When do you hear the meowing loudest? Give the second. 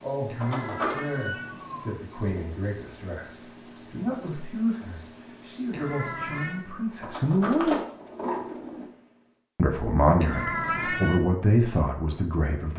11 s.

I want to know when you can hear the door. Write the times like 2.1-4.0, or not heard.
0.4-1.0, 7.0-8.8.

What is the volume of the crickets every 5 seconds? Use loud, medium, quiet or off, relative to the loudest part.
loud, medium, off.